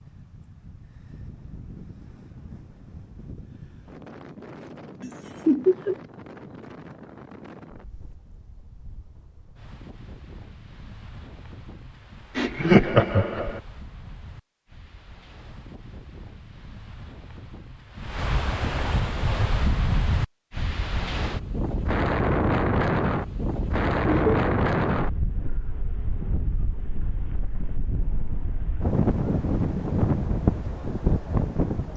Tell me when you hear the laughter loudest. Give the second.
13 s.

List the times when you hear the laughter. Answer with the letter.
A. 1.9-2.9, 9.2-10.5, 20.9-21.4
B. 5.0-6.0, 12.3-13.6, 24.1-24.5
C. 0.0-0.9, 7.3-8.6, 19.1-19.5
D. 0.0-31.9
B.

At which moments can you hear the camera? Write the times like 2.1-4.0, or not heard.
not heard.